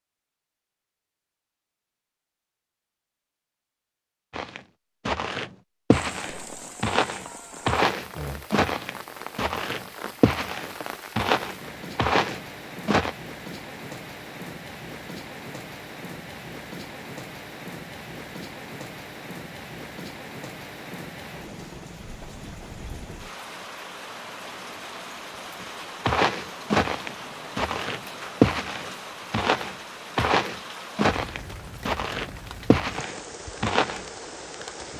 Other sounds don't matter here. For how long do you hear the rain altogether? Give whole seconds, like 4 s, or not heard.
29 s.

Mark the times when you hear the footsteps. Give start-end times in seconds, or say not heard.
4.3-13.2, 25.6-34.0.